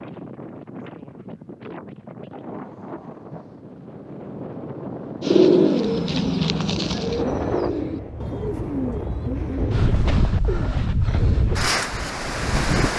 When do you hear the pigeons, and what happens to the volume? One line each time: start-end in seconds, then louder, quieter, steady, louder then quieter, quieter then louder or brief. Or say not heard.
5.2-11.6 quieter.